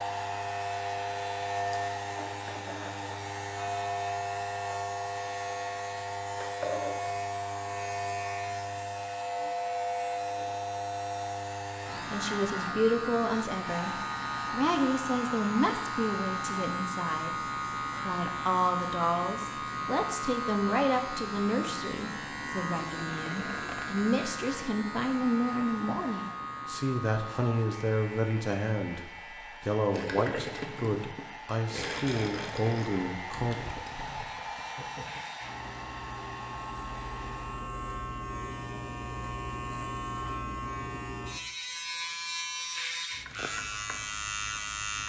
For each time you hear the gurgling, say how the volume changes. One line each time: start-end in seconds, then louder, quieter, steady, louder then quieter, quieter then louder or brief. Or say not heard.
29.9-35.2 quieter.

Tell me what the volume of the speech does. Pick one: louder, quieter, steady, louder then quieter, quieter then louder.
steady.